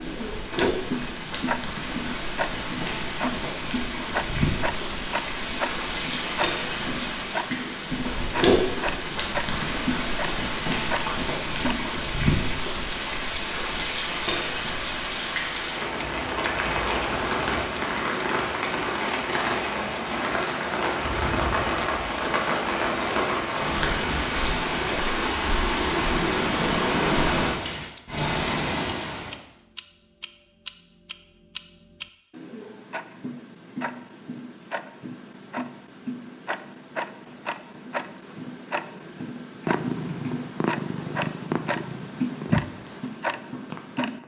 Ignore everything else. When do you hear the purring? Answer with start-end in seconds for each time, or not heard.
39.6-44.2.